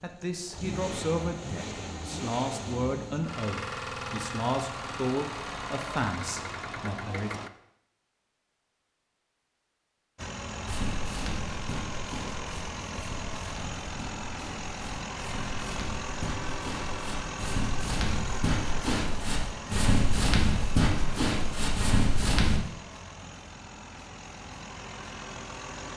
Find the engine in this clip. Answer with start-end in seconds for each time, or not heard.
0.0-7.5, 10.2-25.9.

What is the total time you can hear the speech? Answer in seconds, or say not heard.
7 s.